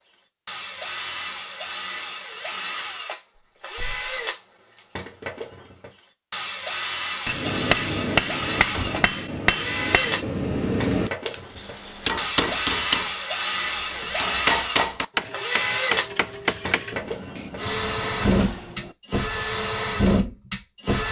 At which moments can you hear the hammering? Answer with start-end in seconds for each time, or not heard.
7.2-17.5.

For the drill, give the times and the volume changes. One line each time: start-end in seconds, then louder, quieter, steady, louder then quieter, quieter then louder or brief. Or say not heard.
0.1-21.0 louder.